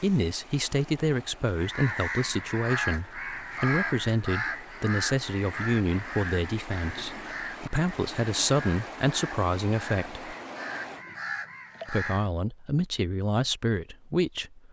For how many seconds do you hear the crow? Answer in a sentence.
The crow can be heard for 11 seconds in total.